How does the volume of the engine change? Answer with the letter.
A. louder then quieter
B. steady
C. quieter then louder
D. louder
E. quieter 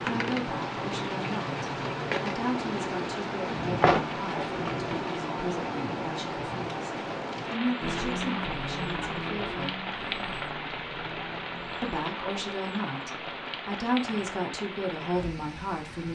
E.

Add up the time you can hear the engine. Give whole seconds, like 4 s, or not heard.
4 s.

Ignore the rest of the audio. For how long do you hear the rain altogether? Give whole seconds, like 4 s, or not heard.
16 s.